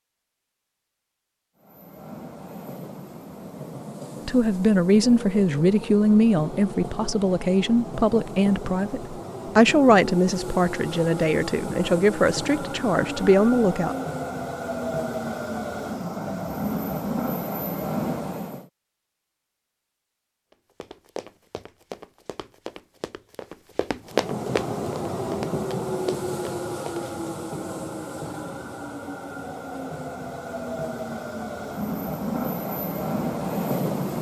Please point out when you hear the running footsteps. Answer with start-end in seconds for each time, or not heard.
20.5-27.1.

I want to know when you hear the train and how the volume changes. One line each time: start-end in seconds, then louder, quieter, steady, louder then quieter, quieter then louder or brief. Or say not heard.
1.6-18.7 louder
24.1-34.1 quieter then louder.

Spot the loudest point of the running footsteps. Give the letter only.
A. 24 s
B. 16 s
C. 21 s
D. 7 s
A.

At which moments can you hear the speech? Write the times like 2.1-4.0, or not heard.
4.2-13.9.